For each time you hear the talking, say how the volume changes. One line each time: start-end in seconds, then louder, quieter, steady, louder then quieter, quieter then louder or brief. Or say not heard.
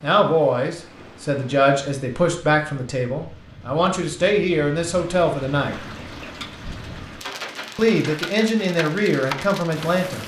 0.0-5.8 steady
7.8-10.2 brief.